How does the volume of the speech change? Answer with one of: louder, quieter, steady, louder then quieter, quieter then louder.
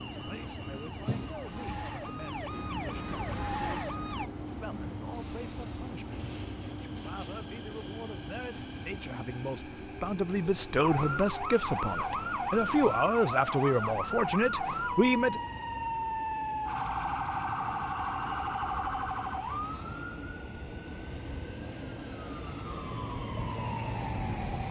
louder.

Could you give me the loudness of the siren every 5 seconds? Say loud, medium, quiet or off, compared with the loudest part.
medium, off, loud, loud, medium.